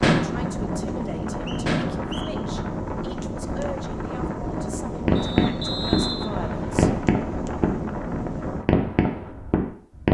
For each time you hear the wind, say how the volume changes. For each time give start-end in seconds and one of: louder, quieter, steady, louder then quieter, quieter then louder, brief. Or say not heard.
0.1-8.7 steady.